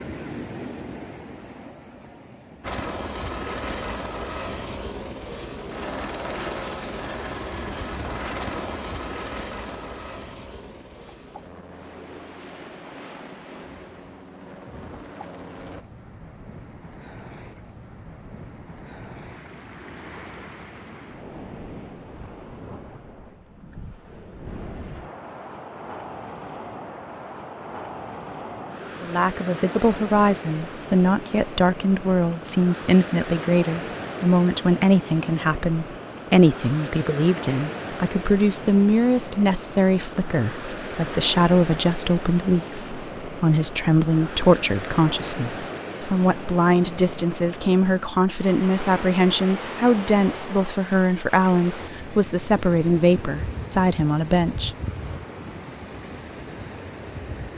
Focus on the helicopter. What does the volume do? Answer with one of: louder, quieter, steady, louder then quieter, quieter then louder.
quieter.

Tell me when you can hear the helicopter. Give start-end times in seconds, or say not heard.
2.6-15.8.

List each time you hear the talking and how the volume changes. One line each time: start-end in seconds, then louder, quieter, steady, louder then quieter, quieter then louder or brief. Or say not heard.
29.0-54.7 steady.